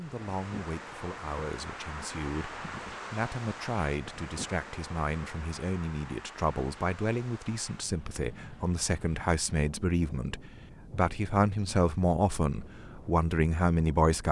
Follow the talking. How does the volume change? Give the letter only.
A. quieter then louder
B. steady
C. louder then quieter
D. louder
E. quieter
D.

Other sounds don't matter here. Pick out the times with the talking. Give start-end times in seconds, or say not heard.
0.0-14.2.